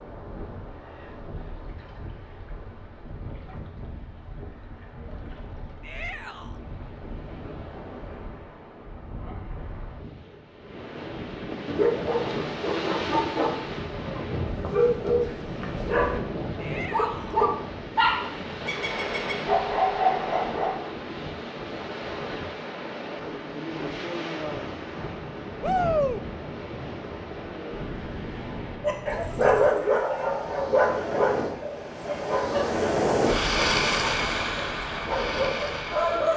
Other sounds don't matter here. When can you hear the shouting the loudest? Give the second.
26 s.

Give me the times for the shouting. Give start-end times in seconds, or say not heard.
5.8-6.6, 16.6-17.4, 25.6-26.2.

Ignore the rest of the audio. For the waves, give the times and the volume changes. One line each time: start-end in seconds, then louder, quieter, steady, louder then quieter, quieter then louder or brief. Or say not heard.
0.0-36.3 louder.